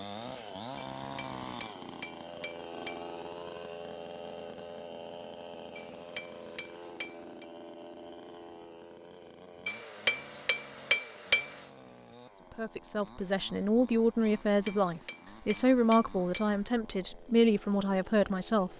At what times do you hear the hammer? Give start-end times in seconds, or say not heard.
0.9-3.0, 5.8-7.5, 9.7-11.7, 14.2-16.6.